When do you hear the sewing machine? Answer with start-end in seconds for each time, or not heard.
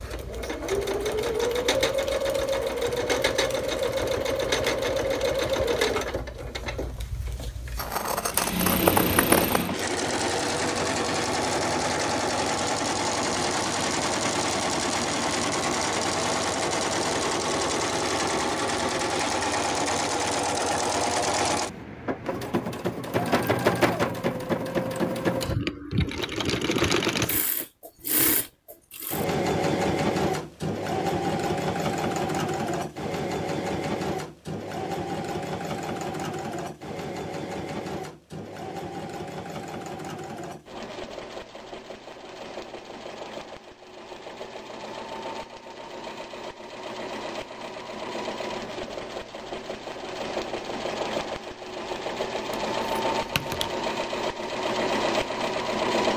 0.0-56.1.